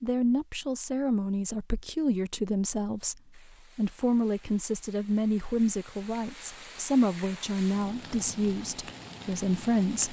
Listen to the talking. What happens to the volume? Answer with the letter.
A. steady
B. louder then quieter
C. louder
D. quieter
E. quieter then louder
A.